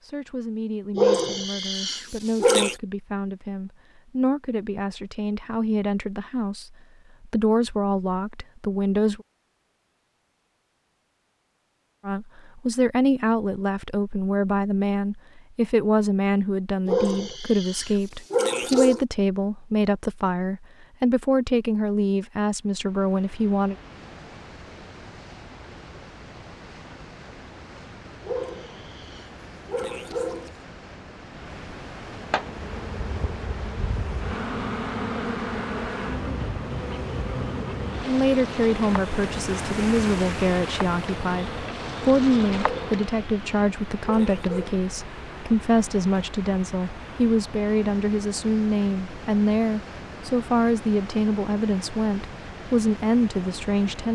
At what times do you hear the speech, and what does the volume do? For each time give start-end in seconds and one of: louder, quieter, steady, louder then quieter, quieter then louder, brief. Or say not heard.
0.0-9.2 louder
12.1-23.8 steady
38.0-54.0 steady.